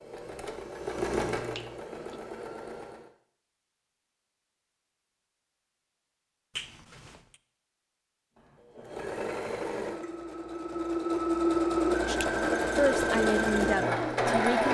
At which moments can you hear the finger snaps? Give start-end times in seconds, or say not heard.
1.5-2.2, 6.5-7.4.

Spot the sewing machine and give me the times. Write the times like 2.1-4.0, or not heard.
0.0-3.1, 8.3-14.6.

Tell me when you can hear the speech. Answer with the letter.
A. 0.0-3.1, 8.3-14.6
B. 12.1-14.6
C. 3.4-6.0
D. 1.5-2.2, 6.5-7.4
B.